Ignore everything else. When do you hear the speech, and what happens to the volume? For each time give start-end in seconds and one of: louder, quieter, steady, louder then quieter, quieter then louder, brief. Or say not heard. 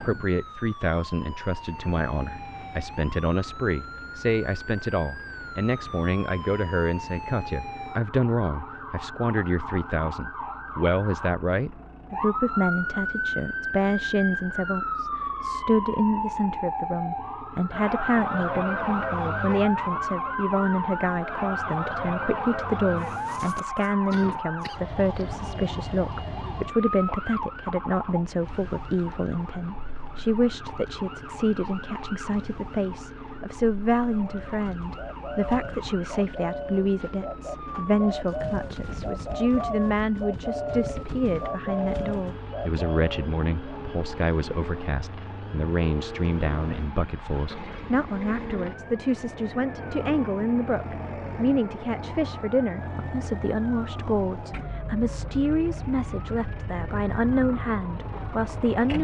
0.0-58.9 steady.